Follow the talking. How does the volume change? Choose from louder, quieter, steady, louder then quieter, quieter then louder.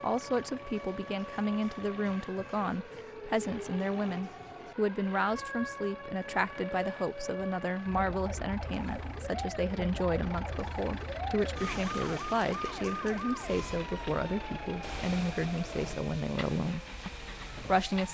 steady.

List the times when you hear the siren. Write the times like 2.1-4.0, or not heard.
0.0-18.0.